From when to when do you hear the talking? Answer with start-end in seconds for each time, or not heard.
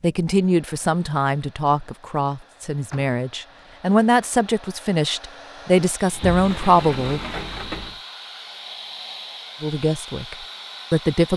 0.0-7.2, 9.6-11.3.